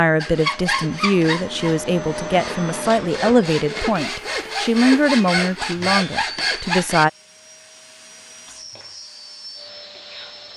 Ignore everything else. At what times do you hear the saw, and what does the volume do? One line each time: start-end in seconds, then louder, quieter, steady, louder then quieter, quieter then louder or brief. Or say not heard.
0.1-7.0 quieter then louder.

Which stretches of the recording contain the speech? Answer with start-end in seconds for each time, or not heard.
0.0-7.1.